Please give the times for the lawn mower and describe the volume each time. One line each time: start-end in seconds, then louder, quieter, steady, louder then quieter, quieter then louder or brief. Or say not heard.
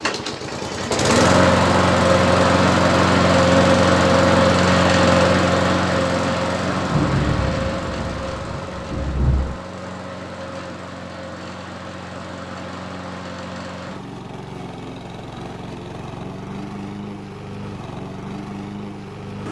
0.0-19.4 quieter.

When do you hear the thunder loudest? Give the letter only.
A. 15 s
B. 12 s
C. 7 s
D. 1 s
C.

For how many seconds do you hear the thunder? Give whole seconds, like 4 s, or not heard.
3 s.